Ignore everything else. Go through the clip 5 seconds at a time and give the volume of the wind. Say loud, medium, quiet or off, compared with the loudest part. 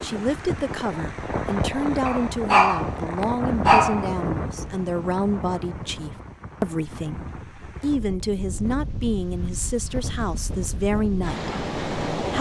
loud, medium, loud.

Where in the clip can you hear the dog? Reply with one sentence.
You can hear the dog from 2.0 to 4.0 s.